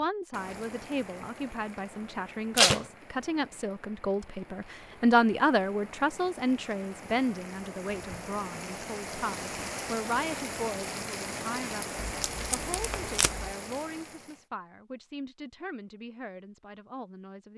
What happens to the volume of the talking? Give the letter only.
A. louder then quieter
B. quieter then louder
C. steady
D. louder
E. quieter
A.